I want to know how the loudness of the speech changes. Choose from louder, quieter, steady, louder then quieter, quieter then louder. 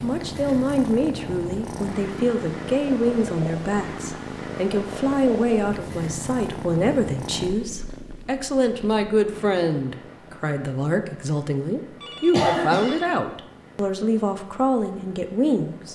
steady.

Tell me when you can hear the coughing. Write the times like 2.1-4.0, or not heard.
12.0-12.9.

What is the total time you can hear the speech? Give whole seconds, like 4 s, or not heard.
16 s.